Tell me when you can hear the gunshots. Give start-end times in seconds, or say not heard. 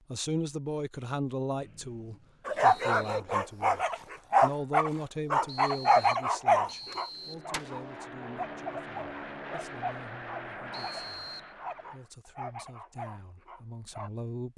6.9-8.0.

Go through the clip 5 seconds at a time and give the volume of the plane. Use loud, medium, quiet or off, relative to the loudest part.
off, loud, loud.